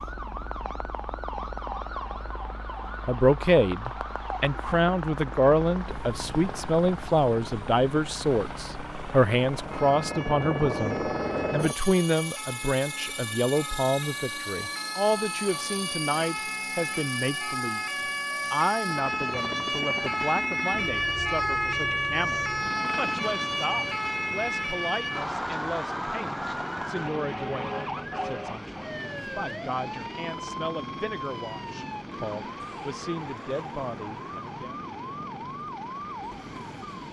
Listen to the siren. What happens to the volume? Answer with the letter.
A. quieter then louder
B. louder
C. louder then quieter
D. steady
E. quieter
C.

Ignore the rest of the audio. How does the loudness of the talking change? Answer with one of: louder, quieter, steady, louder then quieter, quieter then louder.
quieter.